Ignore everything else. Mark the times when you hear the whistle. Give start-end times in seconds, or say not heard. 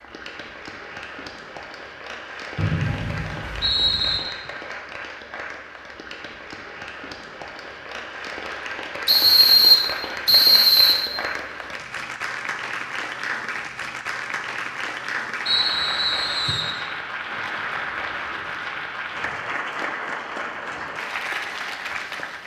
2.5-4.2, 9.1-10.9, 15.4-16.7.